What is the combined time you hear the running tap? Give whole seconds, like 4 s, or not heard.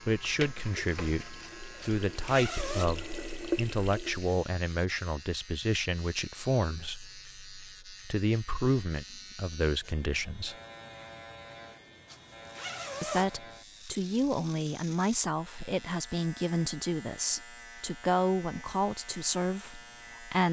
4 s.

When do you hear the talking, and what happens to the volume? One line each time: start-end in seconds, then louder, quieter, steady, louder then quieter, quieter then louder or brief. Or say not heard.
0.1-10.6 steady
13.0-20.4 steady.